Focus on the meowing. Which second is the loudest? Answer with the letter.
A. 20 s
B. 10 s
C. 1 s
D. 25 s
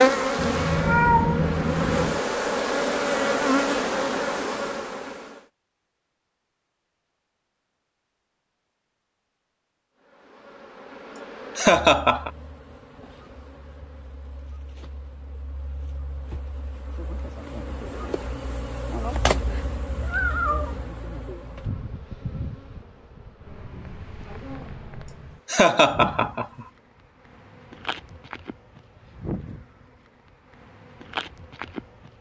C.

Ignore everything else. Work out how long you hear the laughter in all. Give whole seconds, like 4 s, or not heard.
3 s.